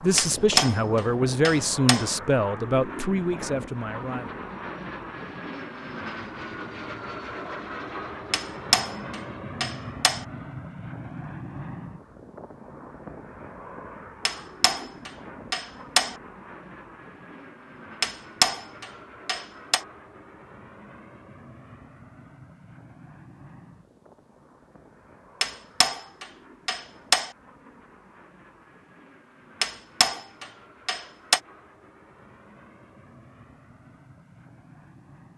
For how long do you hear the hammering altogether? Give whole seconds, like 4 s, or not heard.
11 s.